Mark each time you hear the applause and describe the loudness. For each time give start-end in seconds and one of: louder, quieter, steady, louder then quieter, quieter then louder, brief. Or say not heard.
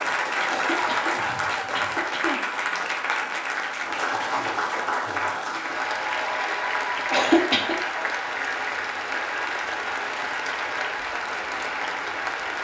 0.0-12.6 steady.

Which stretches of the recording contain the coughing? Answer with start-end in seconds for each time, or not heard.
0.6-2.4, 7.1-7.8.